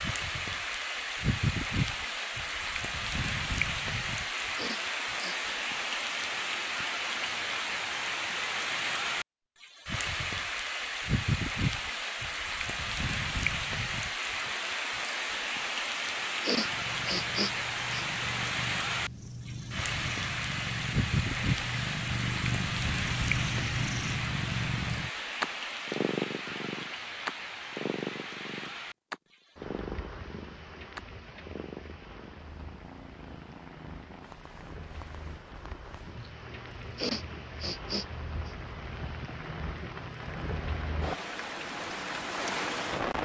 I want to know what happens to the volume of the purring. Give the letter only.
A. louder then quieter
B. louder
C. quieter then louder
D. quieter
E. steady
A.